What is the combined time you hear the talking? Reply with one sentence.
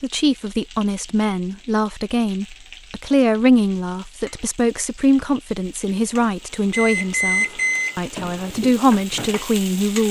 You can hear the talking for 10 seconds altogether.